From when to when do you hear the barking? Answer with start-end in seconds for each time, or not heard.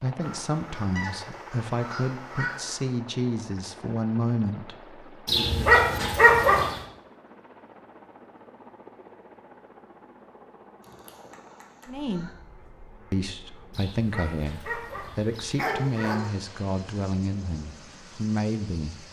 5.2-6.8, 13.8-16.3.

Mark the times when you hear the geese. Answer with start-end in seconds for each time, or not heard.
0.2-3.0, 10.8-12.3.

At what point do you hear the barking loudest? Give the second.
6 s.